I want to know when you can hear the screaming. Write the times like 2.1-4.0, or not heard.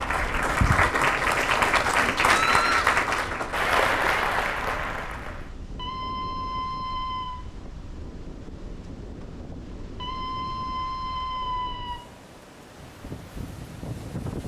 2.4-2.9, 5.8-7.5, 9.9-12.0.